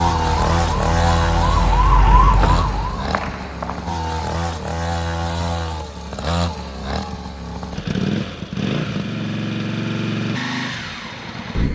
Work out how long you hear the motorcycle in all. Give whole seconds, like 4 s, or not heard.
12 s.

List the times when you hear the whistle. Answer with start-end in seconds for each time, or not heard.
2.4-4.0.